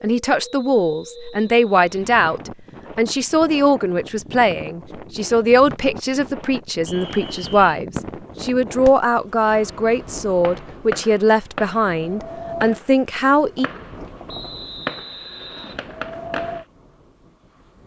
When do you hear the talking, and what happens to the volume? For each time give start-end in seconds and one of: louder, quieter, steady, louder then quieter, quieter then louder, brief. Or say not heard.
0.0-13.7 steady.